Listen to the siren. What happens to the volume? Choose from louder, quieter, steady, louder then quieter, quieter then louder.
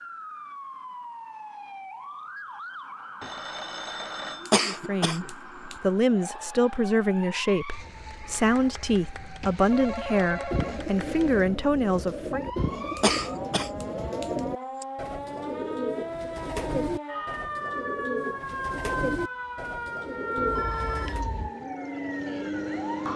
louder.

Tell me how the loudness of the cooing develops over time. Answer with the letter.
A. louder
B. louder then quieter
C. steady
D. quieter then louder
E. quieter
C.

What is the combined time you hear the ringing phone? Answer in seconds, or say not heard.
4 s.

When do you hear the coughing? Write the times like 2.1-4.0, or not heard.
4.5-5.8, 12.9-14.8.